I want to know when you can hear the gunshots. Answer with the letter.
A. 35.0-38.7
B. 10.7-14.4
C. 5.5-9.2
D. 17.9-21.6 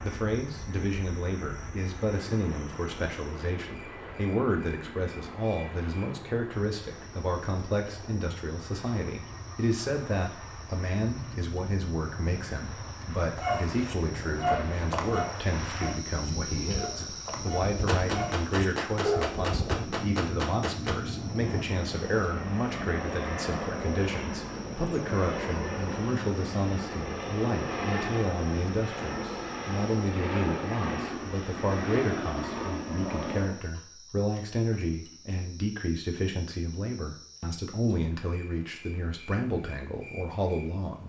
D.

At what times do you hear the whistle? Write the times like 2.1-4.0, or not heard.
not heard.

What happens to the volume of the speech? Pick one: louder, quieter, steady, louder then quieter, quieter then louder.
steady.